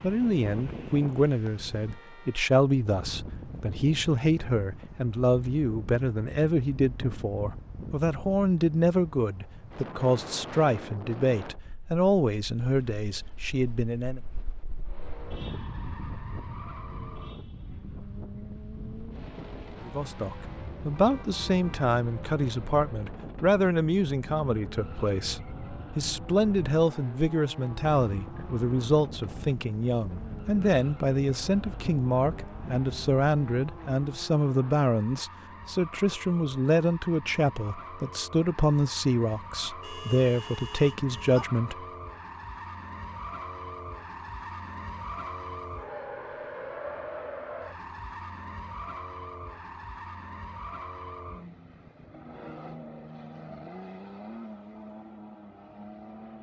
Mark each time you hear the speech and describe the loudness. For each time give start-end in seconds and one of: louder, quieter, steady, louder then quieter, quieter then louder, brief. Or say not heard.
0.0-14.2 steady
19.9-41.8 steady.